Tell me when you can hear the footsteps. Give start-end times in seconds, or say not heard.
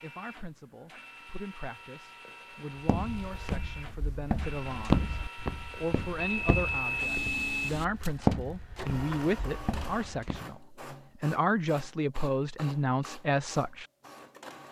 2.9-10.4.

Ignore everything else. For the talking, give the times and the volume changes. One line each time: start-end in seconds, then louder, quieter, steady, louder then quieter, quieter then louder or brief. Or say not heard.
0.0-13.8 louder.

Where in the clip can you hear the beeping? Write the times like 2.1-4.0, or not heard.
6.2-7.7.